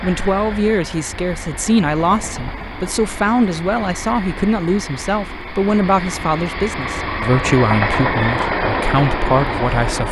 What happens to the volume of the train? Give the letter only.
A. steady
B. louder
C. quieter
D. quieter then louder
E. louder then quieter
B.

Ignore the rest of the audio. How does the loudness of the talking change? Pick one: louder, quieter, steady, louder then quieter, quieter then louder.
steady.